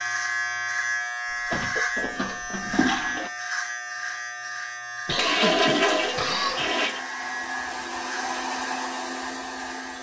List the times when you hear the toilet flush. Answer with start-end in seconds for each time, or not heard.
1.3-3.3, 5.2-7.0.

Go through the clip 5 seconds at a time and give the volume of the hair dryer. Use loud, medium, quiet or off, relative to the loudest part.
off, loud.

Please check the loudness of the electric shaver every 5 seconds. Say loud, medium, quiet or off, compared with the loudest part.
loud, medium.